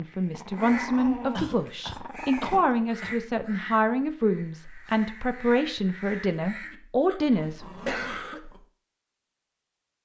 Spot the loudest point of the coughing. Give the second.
8 s.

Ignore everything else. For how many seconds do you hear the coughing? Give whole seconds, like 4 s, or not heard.
3 s.